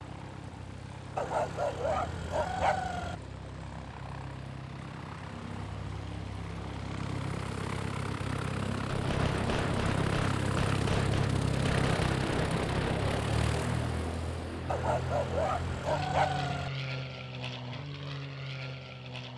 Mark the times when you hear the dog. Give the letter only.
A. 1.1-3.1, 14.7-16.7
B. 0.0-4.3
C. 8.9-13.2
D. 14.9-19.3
A.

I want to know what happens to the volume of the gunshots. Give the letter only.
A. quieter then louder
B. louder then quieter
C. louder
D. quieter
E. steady
E.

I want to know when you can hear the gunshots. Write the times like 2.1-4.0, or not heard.
8.9-13.2.